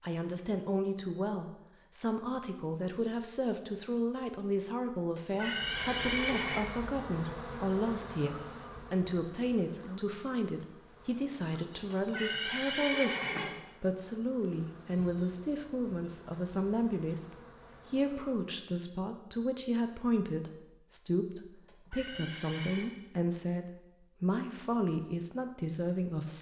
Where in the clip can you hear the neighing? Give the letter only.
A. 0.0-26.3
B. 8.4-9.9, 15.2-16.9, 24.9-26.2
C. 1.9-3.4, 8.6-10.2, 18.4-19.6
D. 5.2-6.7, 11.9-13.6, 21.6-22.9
D.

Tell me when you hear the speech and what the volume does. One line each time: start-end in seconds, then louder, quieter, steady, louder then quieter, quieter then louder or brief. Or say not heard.
0.0-26.3 steady.